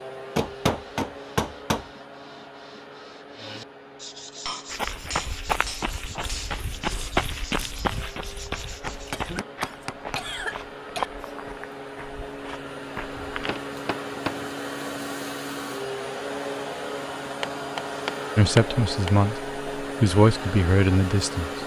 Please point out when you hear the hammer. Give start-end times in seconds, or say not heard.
0.3-1.9, 4.5-6.6, 8.8-10.3, 13.3-14.5, 17.4-19.1.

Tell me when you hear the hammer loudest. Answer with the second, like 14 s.
1 s.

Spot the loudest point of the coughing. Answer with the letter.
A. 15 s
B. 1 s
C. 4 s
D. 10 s
D.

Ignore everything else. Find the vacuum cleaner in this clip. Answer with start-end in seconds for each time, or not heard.
0.0-21.6.